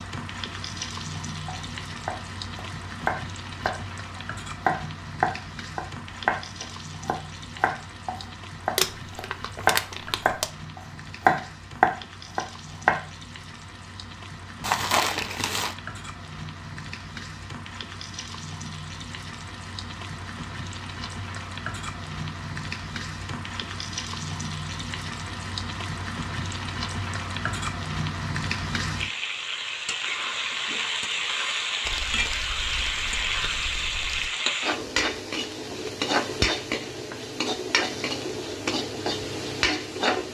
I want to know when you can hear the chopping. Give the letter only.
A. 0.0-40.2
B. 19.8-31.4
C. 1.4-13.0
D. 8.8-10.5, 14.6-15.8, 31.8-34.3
C.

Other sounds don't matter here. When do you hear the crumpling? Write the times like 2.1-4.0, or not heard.
8.8-10.5, 14.6-15.8, 31.8-34.3.